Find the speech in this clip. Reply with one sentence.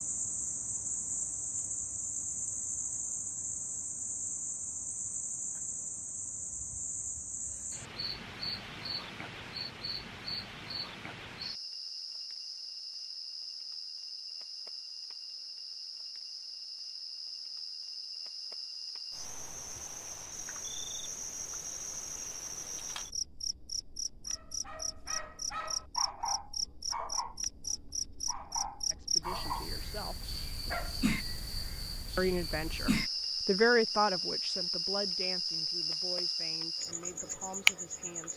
You can hear the speech from 28.9 to 30.4 s and from 32.1 to 38.3 s.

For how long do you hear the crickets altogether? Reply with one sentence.
The crickets can be heard for 38 seconds in total.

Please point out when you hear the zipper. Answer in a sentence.
You can't hear the zipper here.